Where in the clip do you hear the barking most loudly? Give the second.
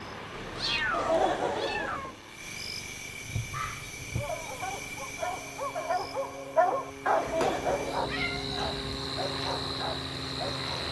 7 s.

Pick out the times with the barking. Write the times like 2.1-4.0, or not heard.
3.5-10.8.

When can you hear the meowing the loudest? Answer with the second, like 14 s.
1 s.